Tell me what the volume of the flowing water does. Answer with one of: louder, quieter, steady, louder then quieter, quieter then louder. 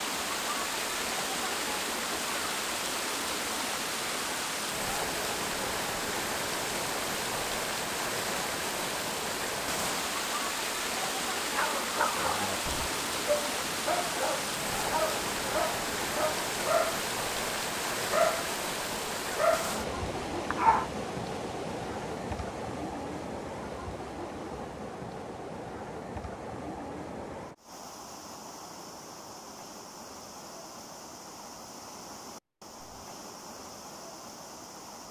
quieter.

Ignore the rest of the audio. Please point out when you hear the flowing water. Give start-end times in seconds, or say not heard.
0.0-35.0.